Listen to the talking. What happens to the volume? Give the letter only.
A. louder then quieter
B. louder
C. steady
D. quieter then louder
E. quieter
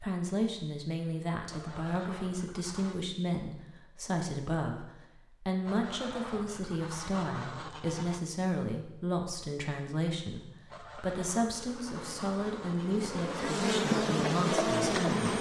C.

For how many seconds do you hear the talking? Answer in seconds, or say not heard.
15 s.